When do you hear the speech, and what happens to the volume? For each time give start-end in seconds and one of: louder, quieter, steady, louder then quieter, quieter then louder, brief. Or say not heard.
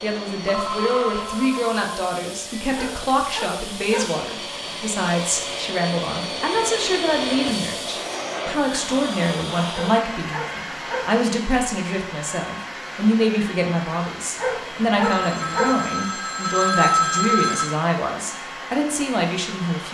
0.0-19.9 steady.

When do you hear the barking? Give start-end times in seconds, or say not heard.
2.7-4.2, 9.7-11.2, 14.3-15.8.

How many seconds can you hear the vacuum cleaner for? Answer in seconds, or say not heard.
20 s.